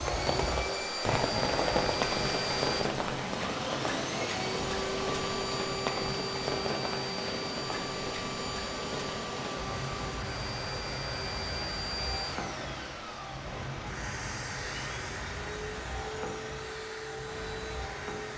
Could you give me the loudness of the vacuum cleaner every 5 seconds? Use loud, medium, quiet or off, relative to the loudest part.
loud, loud, medium, medium.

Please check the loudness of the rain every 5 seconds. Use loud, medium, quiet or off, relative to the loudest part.
loud, loud, medium, medium.